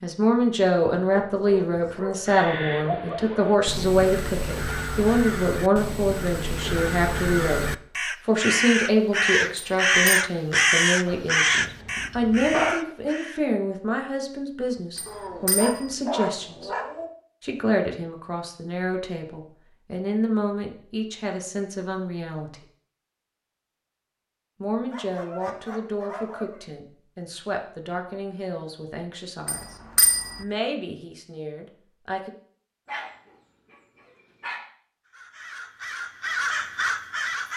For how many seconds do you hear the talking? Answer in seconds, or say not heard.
28 s.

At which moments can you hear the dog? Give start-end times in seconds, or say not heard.
1.2-3.0, 11.1-12.8, 15.1-17.1, 24.9-26.6, 32.9-34.6.